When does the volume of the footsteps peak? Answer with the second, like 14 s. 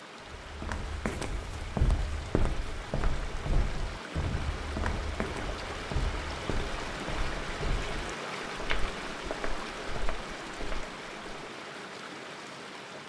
2 s.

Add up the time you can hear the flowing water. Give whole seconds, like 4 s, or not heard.
13 s.